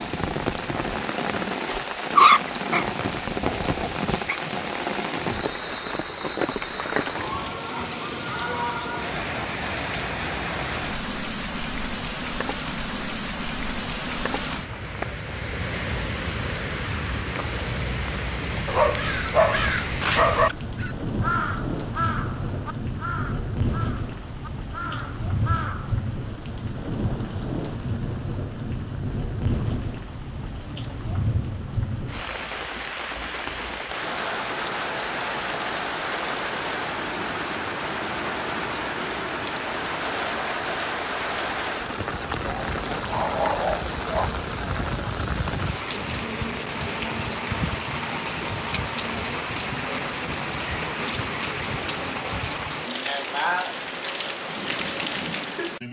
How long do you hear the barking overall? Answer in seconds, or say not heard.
6 s.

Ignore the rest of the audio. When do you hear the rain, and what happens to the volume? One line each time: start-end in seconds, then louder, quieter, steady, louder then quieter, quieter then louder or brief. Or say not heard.
0.0-55.8 steady.